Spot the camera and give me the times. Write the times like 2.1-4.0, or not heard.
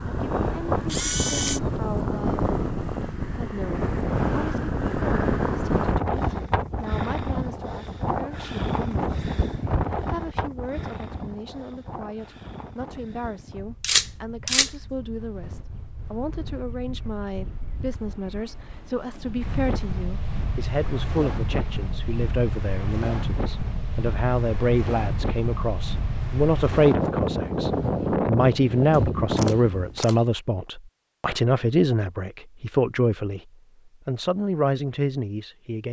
0.8-1.6, 13.8-14.7, 28.9-30.2.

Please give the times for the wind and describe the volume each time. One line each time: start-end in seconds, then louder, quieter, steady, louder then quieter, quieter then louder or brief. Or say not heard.
0.0-30.0 quieter then louder.